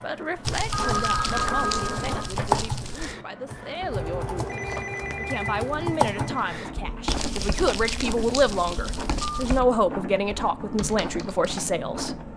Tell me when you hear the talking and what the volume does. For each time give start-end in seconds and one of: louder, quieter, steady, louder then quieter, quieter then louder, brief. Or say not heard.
0.0-12.2 louder.